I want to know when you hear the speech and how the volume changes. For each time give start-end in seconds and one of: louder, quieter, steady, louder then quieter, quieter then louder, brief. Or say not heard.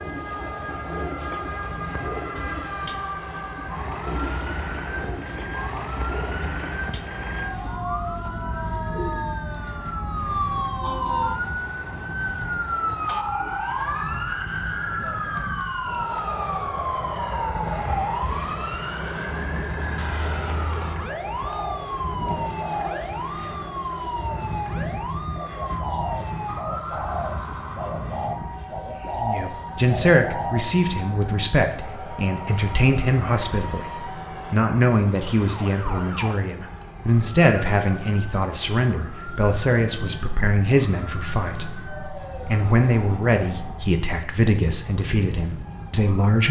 29.1-46.4 steady.